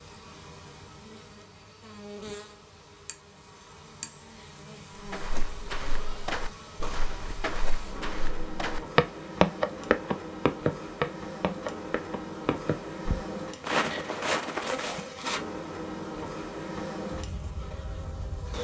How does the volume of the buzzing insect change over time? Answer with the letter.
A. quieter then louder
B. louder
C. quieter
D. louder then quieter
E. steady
B.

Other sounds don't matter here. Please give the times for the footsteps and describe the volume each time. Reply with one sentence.
You can hear the footsteps from 5.0 to 15.1 s, getting louder then quieter.